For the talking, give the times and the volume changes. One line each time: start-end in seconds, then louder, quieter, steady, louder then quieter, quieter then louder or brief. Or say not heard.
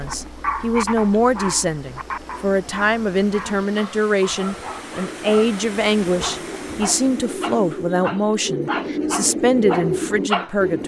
0.0-10.8 steady.